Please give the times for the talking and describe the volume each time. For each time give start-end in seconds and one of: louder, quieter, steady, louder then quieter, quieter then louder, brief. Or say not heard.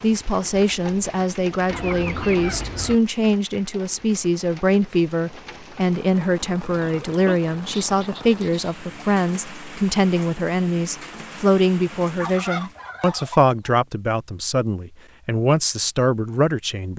0.0-16.9 steady.